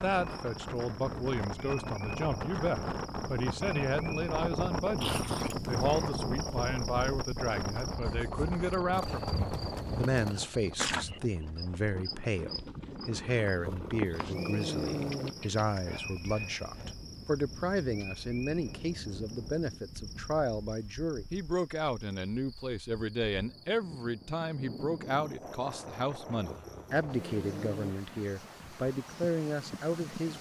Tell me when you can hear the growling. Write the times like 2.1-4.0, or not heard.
5.0-6.2, 13.6-15.3, 26.4-27.9.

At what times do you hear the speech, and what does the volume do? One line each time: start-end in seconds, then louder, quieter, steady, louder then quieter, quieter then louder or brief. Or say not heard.
0.0-30.3 steady.